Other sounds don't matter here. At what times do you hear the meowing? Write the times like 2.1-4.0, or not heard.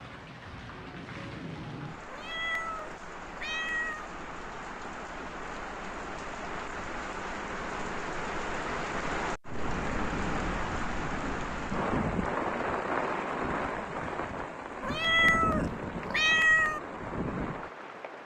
2.1-4.0, 14.8-16.8.